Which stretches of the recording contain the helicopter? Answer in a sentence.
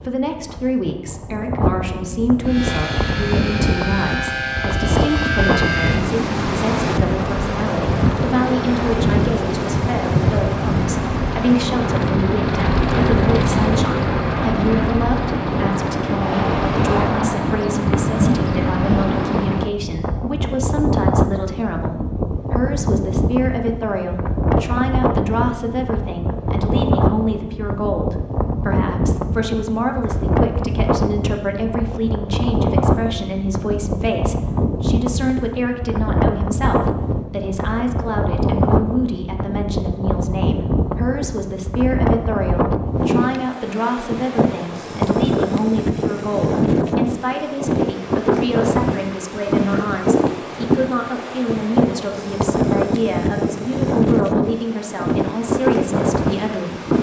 The helicopter can be heard from 2.4 to 19.6 s.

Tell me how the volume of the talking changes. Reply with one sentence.
The loudness of the talking stays about the same.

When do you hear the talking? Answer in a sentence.
The talking can be heard from 0.1 to 56.9 s.